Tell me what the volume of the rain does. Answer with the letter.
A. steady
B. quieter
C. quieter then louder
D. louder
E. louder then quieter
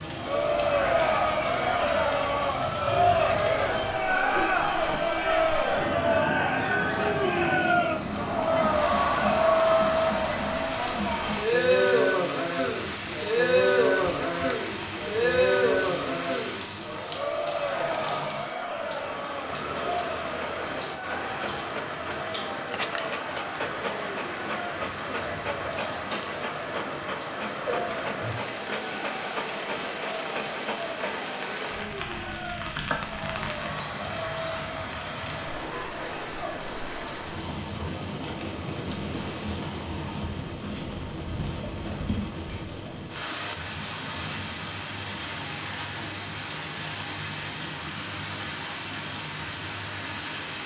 A.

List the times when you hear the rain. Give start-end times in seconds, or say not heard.
0.0-50.6.